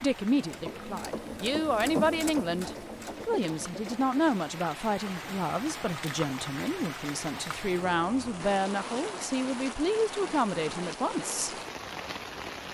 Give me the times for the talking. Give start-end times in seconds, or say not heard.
0.0-11.6.